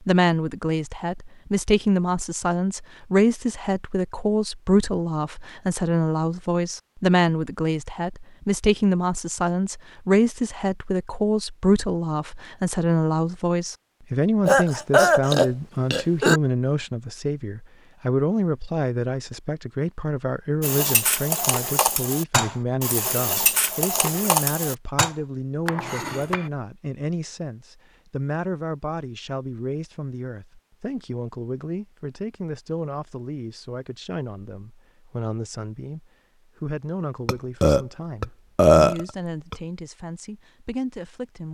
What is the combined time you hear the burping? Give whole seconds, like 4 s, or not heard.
4 s.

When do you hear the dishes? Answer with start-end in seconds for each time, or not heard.
20.6-26.5.